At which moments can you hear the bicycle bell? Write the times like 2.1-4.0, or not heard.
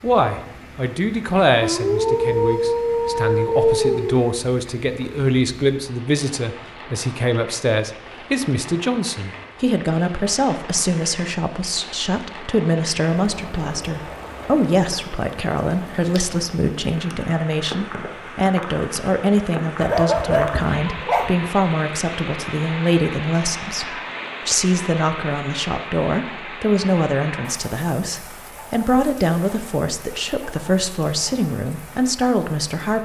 not heard.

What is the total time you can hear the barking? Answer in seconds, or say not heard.
4 s.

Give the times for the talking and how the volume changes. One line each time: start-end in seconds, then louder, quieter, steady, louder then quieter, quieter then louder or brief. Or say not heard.
0.0-32.9 steady.